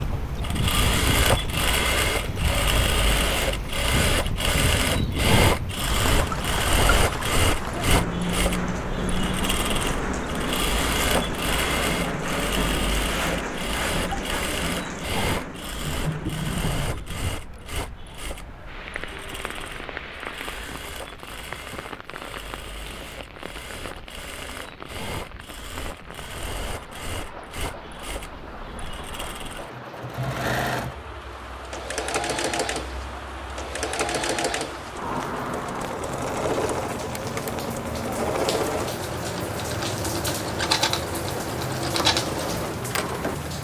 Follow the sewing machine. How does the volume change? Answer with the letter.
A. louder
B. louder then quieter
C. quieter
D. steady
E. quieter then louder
E.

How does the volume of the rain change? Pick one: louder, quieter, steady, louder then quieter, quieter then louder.
quieter then louder.